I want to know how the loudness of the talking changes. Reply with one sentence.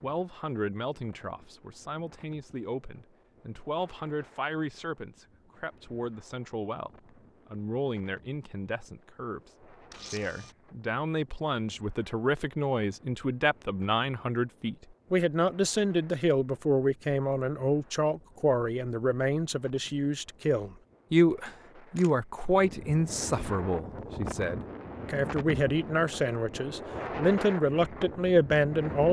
The loudness of the talking goes up.